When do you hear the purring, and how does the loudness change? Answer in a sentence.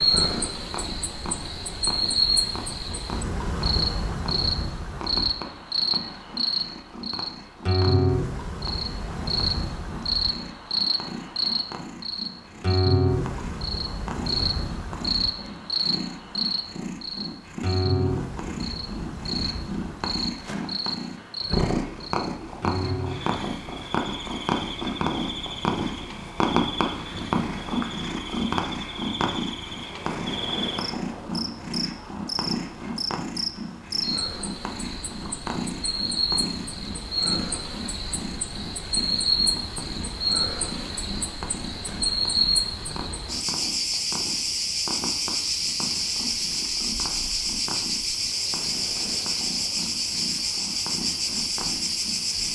The purring can be heard from 0.0 to 52.4 s, getting louder then quieter.